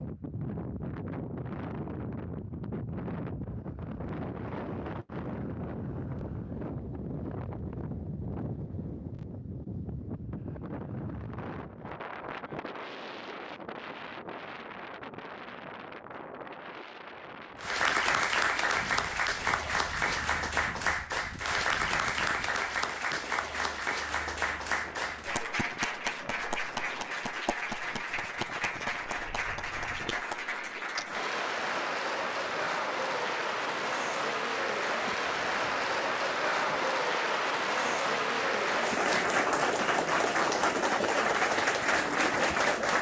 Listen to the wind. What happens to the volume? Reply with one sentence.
The loudness of the wind goes down.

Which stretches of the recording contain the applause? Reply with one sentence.
The applause can be heard from 17.6 to 42.9 s.